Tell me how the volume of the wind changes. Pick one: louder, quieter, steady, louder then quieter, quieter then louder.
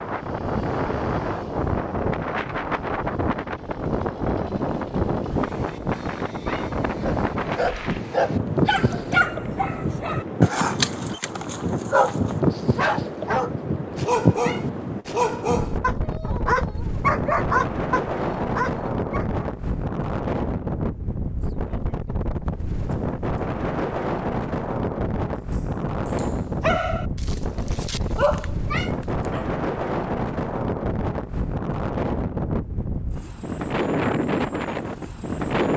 steady.